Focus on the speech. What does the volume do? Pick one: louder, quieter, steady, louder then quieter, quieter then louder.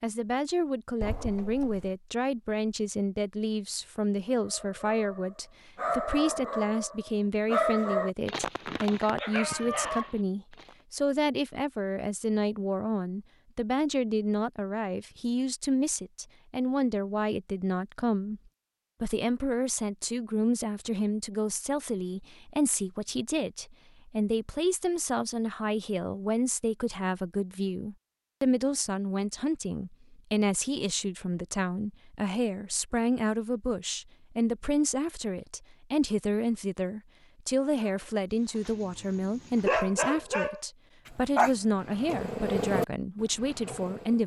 steady.